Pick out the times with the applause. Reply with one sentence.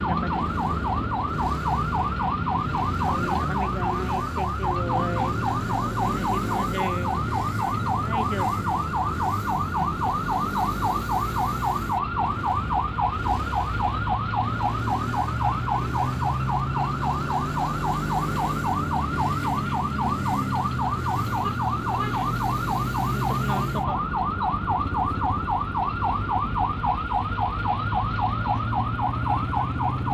The applause can't be heard in this clip.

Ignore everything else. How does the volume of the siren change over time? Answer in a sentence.
The loudness of the siren stays about the same.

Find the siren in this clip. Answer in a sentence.
The siren can be heard from 0.0 to 30.1 s.